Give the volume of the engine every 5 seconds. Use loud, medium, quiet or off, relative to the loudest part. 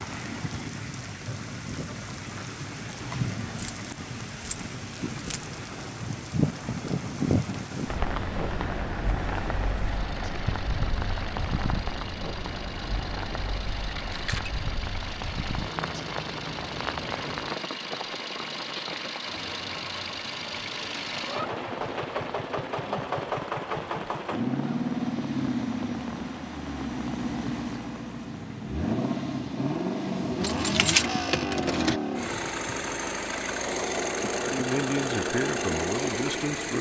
quiet, quiet, quiet, medium, loud, loud, loud, loud.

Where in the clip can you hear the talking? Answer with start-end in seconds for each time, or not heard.
34.4-36.7.